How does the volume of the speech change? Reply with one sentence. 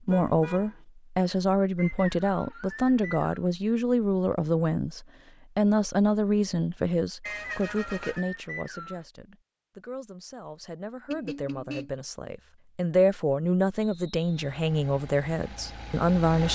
The volume of the speech goes down, then up.